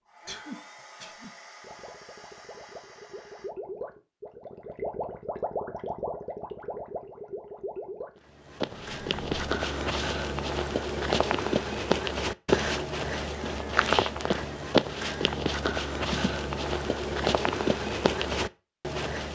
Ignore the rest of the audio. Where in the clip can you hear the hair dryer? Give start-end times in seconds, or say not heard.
0.0-3.5.